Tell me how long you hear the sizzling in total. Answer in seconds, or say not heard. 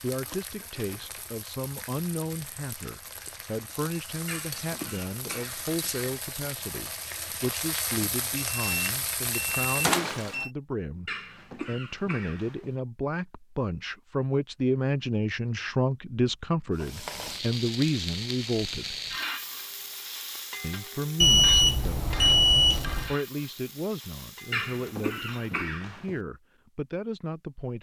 19 s.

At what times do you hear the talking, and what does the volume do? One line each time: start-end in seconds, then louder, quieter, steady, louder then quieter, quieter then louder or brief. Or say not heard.
0.0-18.9 louder
20.6-27.7 steady.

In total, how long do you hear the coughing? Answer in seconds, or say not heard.
5 s.